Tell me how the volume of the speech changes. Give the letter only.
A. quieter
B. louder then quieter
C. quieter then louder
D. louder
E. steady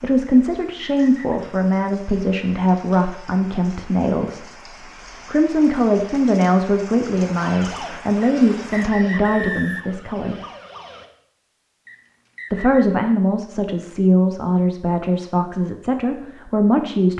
E.